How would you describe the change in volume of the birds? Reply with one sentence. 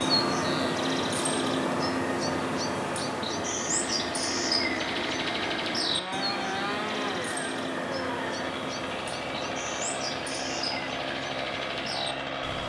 The volume of the birds goes down.